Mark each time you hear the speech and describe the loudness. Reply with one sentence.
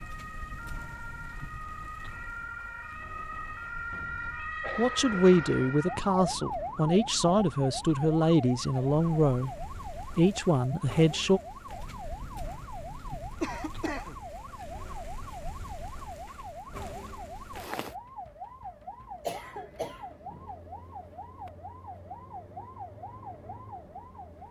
You can hear the speech from 4.5 to 11.4 s, at a steady volume.